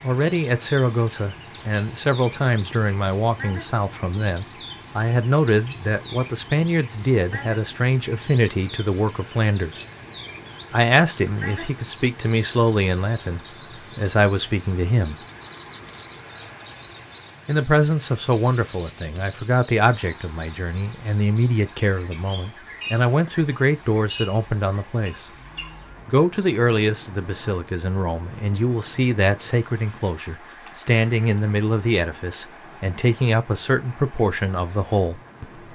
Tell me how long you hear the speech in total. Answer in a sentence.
You can hear the speech for 32 seconds altogether.